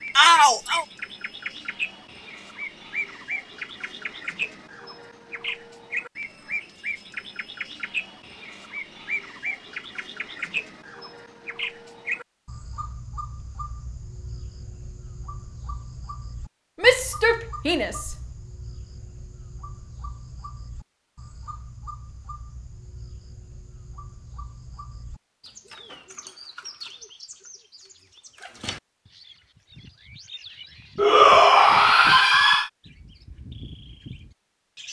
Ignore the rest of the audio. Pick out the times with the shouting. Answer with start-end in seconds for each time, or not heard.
0.1-0.8, 16.8-18.1, 30.9-32.7.